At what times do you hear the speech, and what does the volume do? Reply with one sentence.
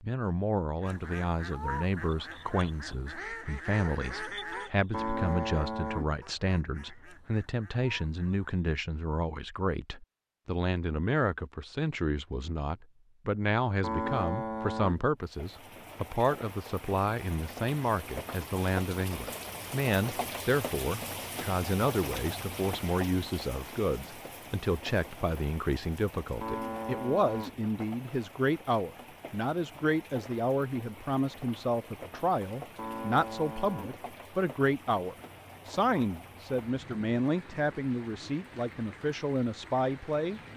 You can hear the speech from 0.0 to 40.4 s, at a steady volume.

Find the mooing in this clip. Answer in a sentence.
The mooing can be heard from 4.9 to 6.2 s, from 13.8 to 15.1 s, from 26.4 to 27.6 s and from 32.8 to 34.0 s.